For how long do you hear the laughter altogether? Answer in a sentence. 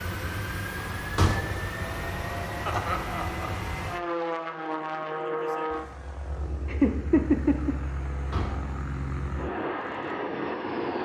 You can hear the laughter for 2 seconds altogether.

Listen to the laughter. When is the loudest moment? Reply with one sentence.
The loudest moment of the laughter is at 7 seconds.